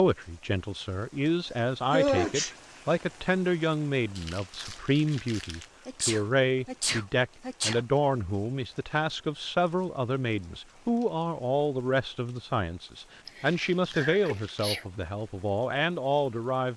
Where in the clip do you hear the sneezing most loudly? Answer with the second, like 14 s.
2 s.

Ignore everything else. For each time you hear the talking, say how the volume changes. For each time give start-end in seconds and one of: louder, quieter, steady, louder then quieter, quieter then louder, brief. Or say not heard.
0.0-16.7 steady.